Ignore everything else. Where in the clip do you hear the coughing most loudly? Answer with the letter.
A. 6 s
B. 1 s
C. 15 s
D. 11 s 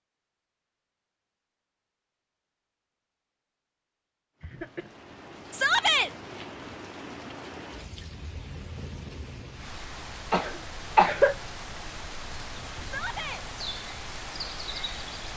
D.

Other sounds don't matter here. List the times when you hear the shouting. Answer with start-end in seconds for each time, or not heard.
5.5-6.1, 12.8-13.4.